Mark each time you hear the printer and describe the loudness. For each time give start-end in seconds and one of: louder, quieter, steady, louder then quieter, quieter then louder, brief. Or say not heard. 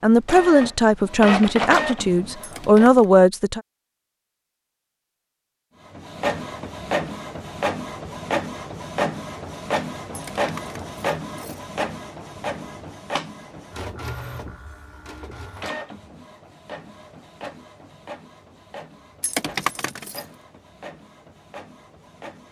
0.2-3.1 brief
5.8-22.4 quieter.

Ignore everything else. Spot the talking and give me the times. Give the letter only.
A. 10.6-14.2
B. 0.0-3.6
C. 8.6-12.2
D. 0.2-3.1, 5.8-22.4
B.